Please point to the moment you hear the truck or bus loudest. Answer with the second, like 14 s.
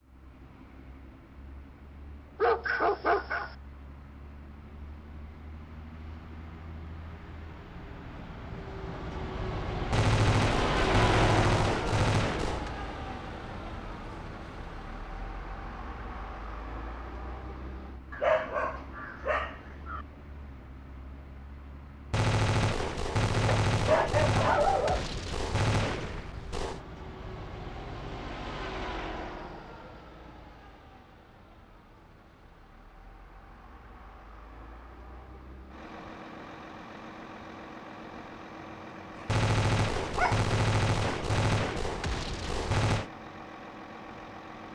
11 s.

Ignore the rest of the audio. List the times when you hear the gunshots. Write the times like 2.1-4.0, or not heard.
9.9-12.8, 22.1-26.8, 39.2-43.1.